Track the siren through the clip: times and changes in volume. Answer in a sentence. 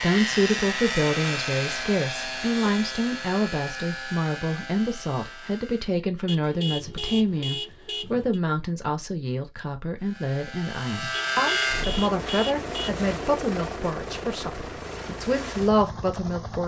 The siren can't be heard in this clip.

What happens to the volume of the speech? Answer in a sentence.
The volume of the speech stays about the same.